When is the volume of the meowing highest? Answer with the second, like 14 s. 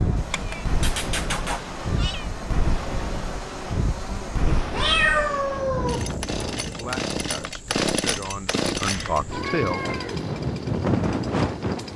5 s.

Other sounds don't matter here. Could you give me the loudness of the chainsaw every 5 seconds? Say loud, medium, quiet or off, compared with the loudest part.
medium, loud, medium.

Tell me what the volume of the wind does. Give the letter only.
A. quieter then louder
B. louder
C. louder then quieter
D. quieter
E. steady
A.